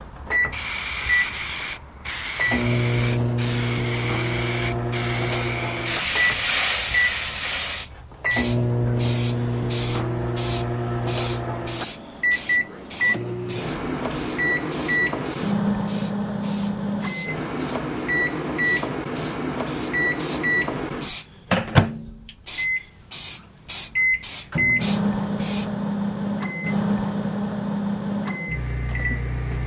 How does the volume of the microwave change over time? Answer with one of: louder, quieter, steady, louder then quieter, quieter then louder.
steady.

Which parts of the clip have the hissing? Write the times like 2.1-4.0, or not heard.
0.1-25.7.